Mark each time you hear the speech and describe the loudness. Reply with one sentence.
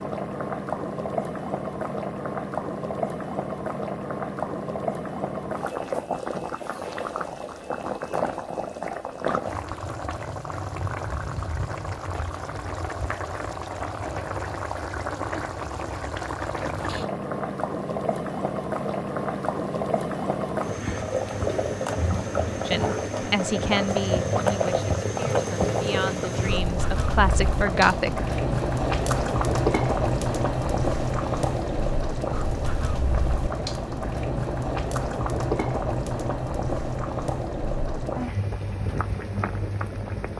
The speech can be heard from 22.6 to 28.2 s, getting quieter then louder.